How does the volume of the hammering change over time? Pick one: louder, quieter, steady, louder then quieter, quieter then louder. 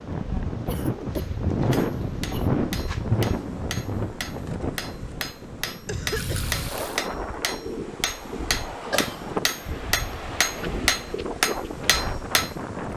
louder.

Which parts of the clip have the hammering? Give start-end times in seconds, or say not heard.
1.1-12.5.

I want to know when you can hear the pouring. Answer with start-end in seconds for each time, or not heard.
6.2-7.1.